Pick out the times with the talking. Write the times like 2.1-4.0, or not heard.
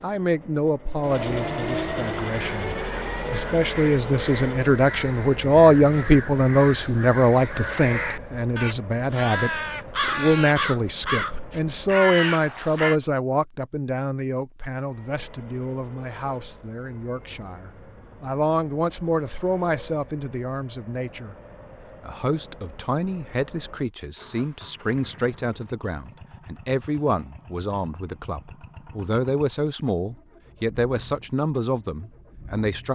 0.0-21.4, 22.0-32.8.